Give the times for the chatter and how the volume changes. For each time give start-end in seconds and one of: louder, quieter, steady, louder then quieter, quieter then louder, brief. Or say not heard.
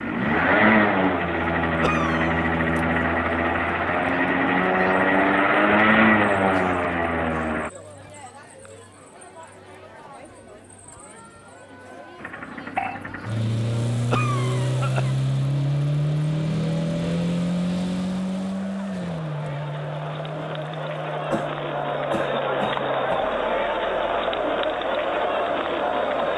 0.1-26.3 louder.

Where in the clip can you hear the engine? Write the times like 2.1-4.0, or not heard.
0.0-7.7, 12.2-26.3.